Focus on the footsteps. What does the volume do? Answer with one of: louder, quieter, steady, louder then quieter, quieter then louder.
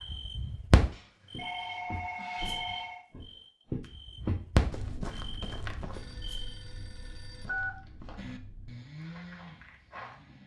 louder then quieter.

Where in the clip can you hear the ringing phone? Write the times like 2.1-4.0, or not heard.
0.9-3.0, 5.9-7.7.